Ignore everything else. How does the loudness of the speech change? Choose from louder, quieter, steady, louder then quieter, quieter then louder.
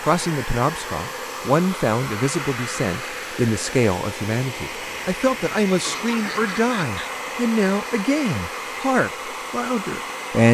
steady.